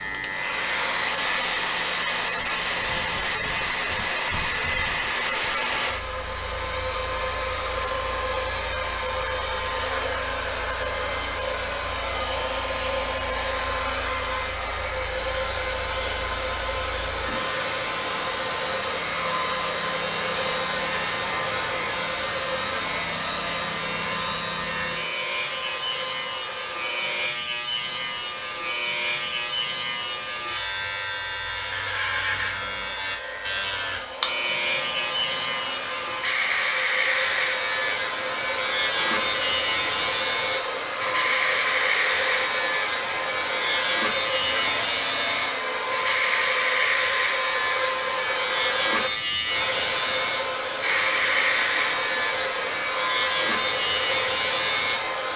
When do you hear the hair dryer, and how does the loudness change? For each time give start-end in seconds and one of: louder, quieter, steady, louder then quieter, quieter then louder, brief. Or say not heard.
0.1-55.3 quieter then louder.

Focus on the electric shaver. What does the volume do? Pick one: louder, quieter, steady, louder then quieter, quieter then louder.
louder.